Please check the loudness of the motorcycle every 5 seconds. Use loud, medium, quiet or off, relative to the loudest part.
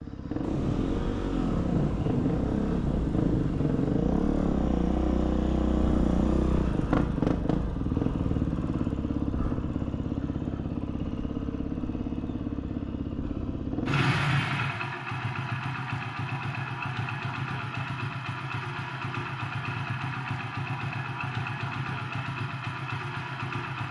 loud, loud, loud, medium, medium.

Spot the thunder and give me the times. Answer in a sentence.
The thunder can be heard from 0.4 to 4.0 s.